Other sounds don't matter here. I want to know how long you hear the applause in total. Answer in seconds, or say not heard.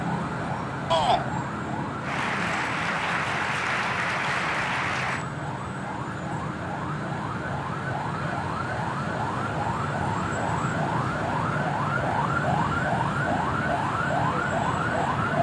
3 s.